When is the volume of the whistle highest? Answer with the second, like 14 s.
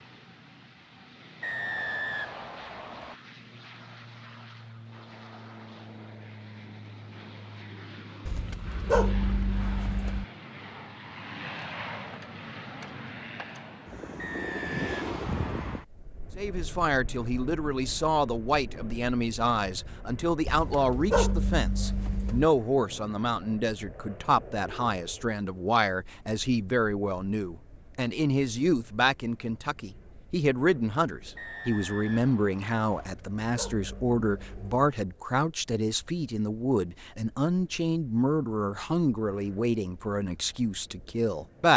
2 s.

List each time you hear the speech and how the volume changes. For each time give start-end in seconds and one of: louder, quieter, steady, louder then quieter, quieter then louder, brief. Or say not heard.
16.4-41.7 steady.